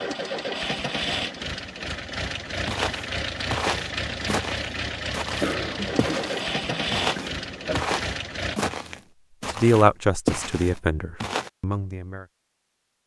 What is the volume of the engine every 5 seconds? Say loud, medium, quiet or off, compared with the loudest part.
loud, loud, off.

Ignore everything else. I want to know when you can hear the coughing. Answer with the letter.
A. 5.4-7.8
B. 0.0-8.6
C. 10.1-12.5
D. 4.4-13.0
A.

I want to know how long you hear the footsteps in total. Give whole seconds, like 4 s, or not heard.
9 s.